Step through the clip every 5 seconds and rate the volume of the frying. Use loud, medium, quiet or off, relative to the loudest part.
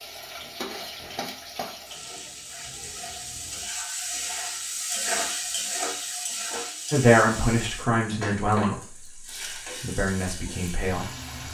loud, loud, medium.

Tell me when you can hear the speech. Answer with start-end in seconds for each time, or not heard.
6.9-9.2, 9.8-11.1.